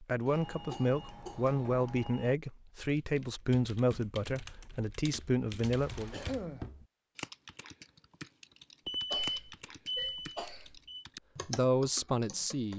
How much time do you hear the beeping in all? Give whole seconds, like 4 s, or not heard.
5 s.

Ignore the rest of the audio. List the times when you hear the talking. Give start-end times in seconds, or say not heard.
0.0-6.2, 11.4-12.7.